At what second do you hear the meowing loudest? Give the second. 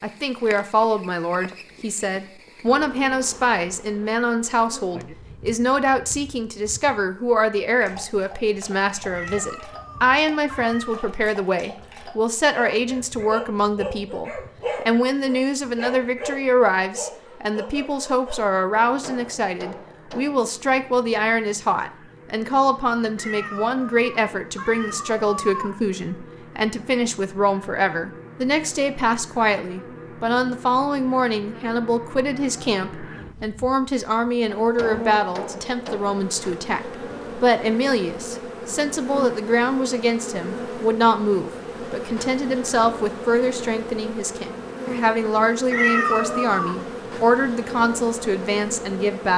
46 s.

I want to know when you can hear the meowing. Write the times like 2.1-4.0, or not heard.
9.1-11.2, 23.1-25.7, 45.7-46.9.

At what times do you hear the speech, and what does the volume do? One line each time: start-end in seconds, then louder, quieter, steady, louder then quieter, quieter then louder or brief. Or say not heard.
0.0-49.3 steady.